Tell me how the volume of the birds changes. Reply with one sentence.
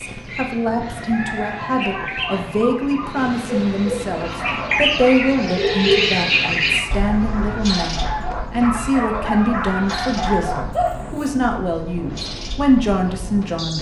The loudness of the birds goes up, then down.